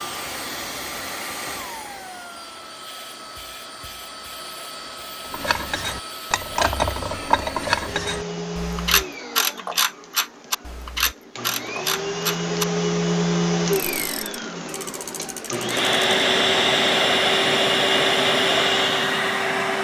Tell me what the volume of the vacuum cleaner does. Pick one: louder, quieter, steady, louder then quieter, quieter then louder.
louder.